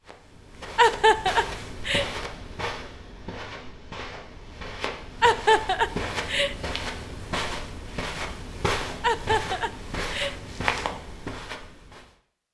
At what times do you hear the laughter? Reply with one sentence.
You can hear the laughter from 0.8 to 2.0 s, from 5.2 to 6.5 s and from 9.0 to 10.3 s.